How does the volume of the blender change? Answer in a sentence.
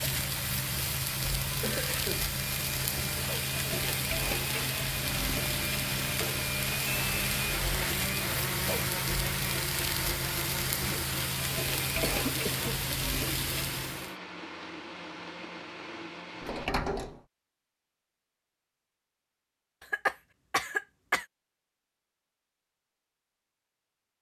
The volume of the blender goes up, then down.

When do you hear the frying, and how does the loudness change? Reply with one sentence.
The frying can be heard from 0.0 to 14.2 s, at a steady volume.